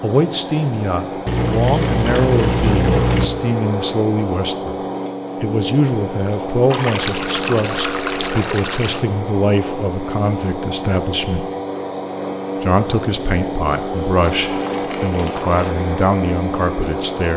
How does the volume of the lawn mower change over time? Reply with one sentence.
The volume of the lawn mower stays about the same.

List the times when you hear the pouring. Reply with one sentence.
You can hear the pouring from 1.2 to 3.3 s, from 6.7 to 9.0 s and from 14.3 to 15.8 s.